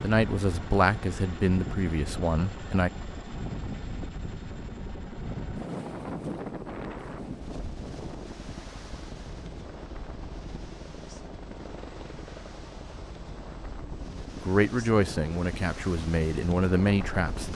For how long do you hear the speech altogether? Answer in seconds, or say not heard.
6 s.